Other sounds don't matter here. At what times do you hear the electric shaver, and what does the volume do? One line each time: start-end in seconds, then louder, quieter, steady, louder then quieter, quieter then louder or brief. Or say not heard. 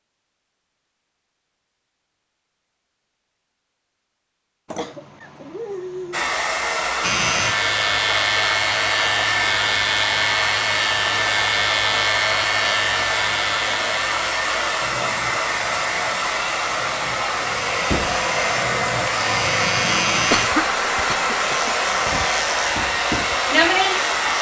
7.0-24.3 quieter then louder.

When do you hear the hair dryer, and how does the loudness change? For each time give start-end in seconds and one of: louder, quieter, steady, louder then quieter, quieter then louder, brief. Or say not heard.
6.1-24.3 steady.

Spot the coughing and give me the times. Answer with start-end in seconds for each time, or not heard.
4.7-6.2, 20.3-21.7.